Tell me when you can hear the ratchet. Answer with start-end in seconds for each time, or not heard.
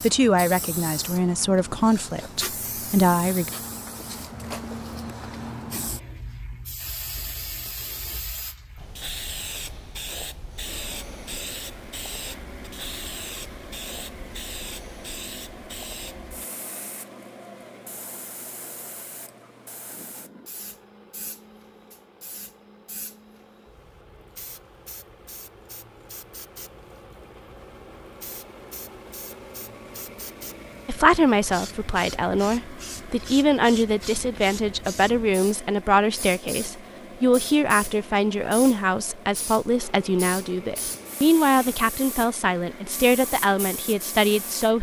not heard.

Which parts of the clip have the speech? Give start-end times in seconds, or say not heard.
0.0-3.5, 30.9-44.7.